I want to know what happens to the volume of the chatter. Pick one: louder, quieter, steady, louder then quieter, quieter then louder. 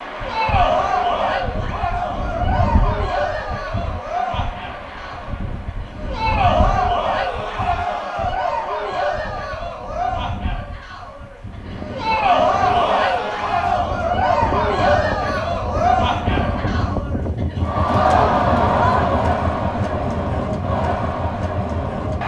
steady.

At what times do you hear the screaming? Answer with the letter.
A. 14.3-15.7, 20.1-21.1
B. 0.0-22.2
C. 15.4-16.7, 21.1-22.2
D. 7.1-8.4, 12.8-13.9
D.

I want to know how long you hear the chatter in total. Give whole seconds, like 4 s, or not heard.
22 s.